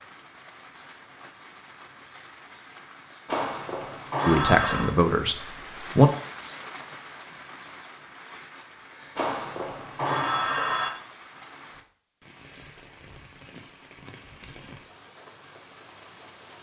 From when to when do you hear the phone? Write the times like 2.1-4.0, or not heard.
3.2-5.0, 9.2-10.9.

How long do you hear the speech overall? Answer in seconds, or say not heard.
2 s.